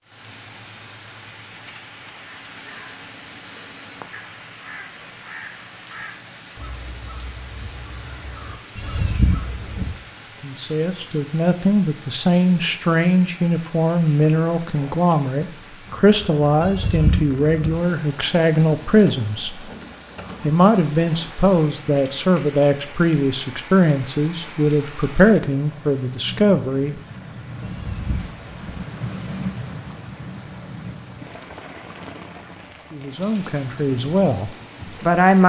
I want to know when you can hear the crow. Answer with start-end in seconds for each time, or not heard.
2.2-10.1.